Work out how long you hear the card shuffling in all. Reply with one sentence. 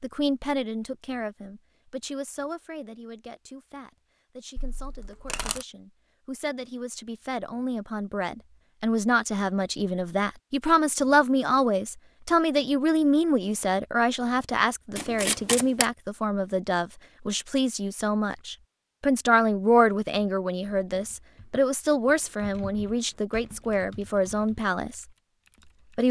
You can hear the card shuffling for 2 seconds altogether.